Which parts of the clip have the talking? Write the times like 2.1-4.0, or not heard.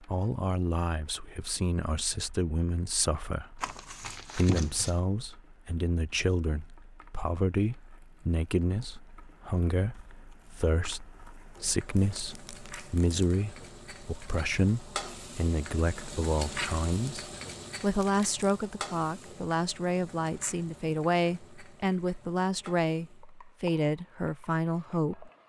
0.0-25.3.